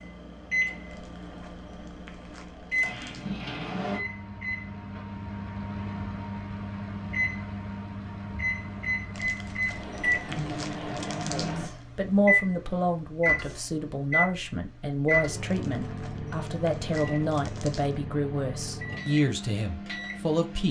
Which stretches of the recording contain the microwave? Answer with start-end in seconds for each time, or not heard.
0.0-20.6.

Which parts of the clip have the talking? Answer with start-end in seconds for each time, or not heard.
11.3-20.6.